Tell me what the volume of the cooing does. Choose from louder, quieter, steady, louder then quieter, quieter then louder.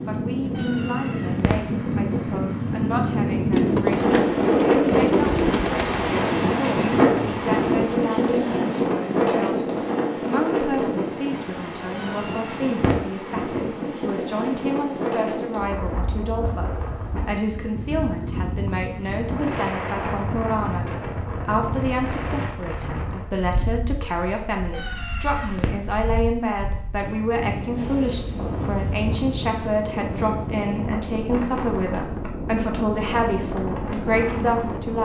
quieter.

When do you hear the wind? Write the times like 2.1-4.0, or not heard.
0.0-35.0.